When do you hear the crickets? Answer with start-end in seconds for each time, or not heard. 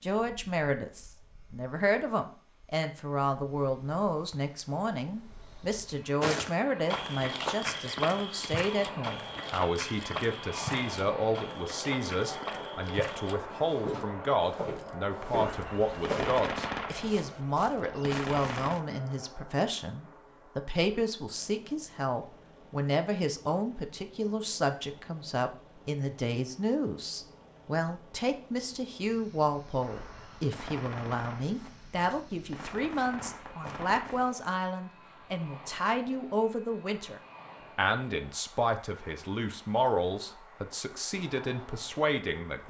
not heard.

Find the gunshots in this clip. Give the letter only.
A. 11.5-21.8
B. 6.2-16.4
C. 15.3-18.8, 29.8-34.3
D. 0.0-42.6
C.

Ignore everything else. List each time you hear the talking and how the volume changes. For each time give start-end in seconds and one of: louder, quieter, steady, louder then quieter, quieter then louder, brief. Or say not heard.
0.0-42.6 steady.